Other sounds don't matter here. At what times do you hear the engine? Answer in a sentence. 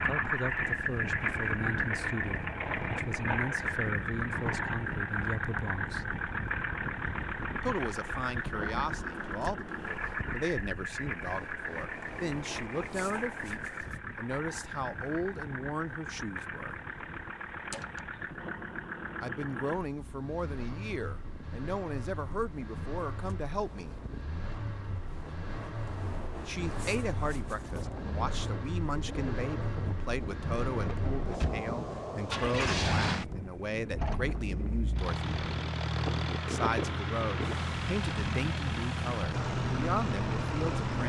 The engine can be heard from 0.0 to 41.0 s.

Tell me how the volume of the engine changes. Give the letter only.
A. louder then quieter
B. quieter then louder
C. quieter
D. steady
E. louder
B.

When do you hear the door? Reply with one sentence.
The door can be heard from 17.7 to 18.1 s.